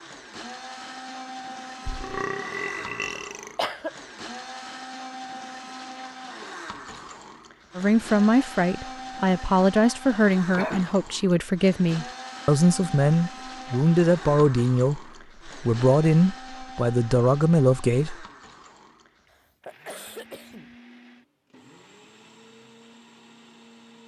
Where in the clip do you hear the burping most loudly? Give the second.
2 s.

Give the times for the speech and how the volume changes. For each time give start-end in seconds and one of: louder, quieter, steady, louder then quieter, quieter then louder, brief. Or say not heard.
7.8-18.2 steady.